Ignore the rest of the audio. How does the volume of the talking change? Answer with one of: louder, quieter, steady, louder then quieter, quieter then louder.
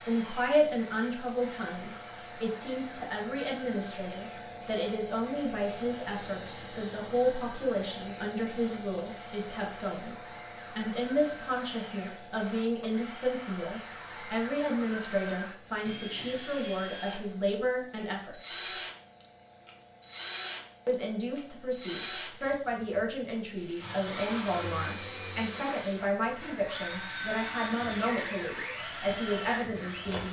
steady.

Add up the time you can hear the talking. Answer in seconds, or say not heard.
28 s.